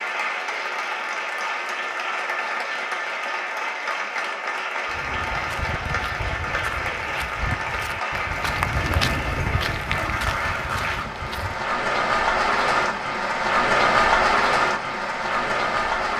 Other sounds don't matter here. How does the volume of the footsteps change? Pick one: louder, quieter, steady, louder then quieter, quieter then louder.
louder then quieter.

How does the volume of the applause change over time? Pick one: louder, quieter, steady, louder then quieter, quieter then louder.
louder.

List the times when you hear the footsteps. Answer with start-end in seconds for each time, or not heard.
4.8-11.7.